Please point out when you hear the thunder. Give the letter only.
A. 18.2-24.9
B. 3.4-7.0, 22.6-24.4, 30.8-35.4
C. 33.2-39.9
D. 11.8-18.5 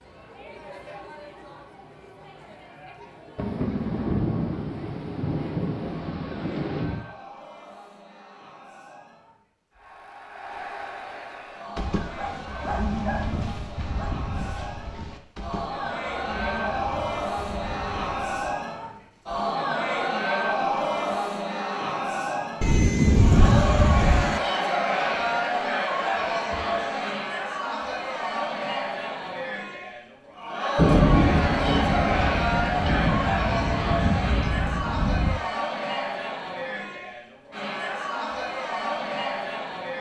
B.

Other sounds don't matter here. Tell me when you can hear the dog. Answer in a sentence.
You can hear the dog from 11.8 to 18.5 s.